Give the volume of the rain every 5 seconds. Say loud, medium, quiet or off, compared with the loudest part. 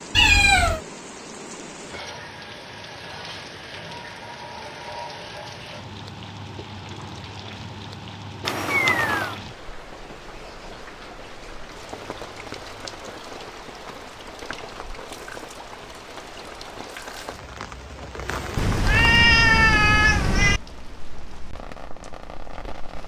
loud, loud, loud, loud, medium.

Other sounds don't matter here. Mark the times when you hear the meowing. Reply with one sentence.
The meowing can be heard from 0.1 to 0.8 s, from 8.4 to 9.3 s and from 18.6 to 20.6 s.